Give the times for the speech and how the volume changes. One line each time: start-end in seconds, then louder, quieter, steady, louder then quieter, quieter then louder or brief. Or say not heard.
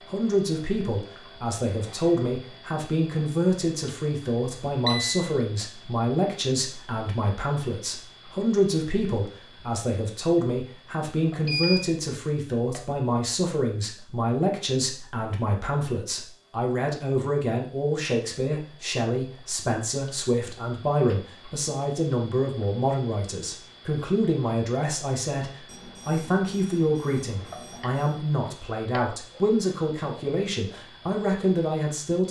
0.1-32.2 steady.